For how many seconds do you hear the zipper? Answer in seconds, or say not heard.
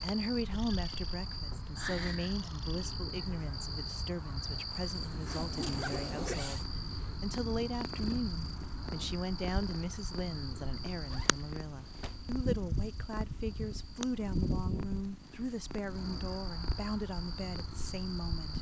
3 s.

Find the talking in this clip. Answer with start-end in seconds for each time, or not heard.
0.0-18.5.